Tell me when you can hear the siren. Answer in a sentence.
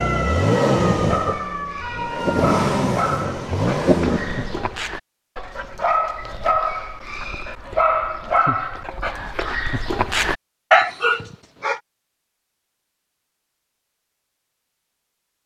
The siren can be heard from 0.0 to 2.5 s.